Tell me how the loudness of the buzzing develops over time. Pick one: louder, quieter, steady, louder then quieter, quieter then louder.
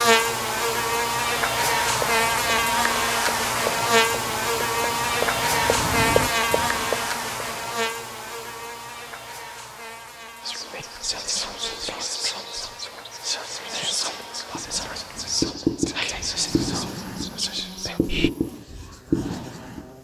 quieter.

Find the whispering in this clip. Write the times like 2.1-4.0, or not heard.
10.4-18.3.